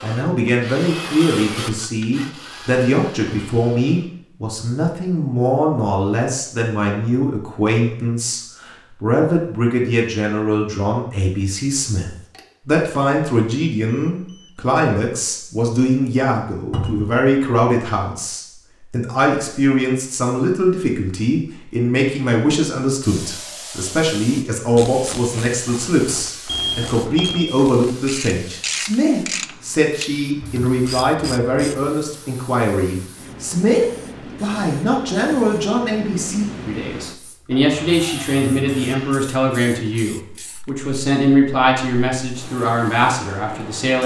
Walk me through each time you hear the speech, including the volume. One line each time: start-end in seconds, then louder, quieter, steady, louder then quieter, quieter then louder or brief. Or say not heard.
0.0-44.0 steady.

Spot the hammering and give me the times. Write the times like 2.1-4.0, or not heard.
not heard.